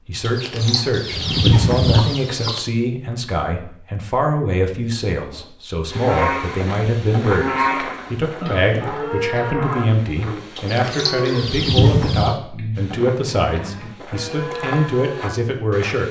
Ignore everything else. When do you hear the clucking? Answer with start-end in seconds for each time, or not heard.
0.2-2.6, 10.6-12.3.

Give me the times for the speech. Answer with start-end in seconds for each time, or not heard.
0.1-16.0.